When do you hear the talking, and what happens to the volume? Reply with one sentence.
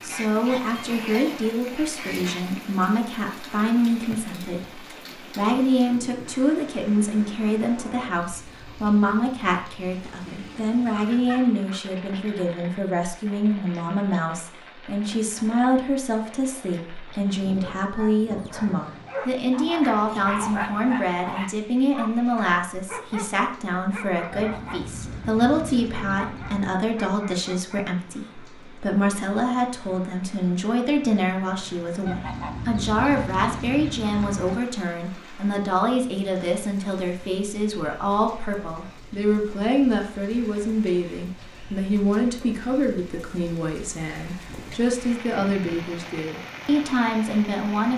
The talking can be heard from 0.0 to 47.9 s, at a steady volume.